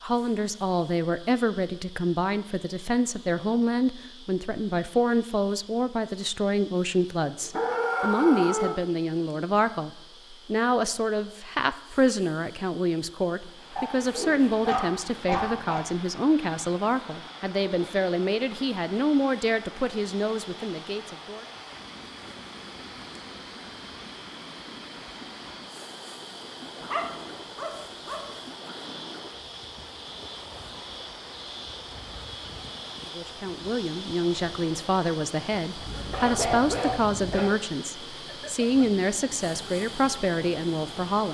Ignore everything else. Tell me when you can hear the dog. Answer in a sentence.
The dog can be heard from 7.4 to 8.8 s, from 13.8 to 15.8 s, from 26.8 to 28.4 s and from 35.9 to 37.5 s.